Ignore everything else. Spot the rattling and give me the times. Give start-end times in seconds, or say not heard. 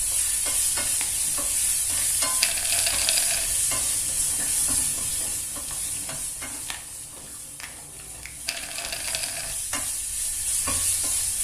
2.4-3.5, 8.4-9.6.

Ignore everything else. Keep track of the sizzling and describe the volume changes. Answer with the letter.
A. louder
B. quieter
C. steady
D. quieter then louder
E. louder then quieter
D.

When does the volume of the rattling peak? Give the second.
3 s.